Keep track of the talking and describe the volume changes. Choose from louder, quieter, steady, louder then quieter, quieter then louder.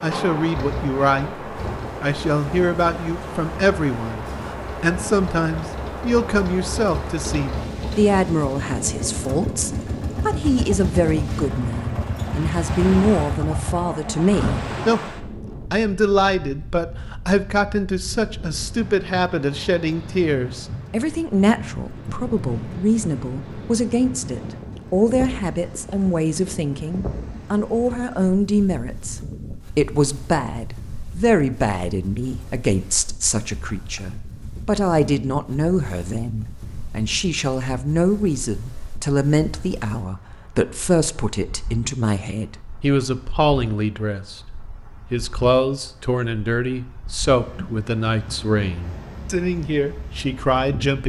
steady.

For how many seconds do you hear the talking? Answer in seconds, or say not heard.
50 s.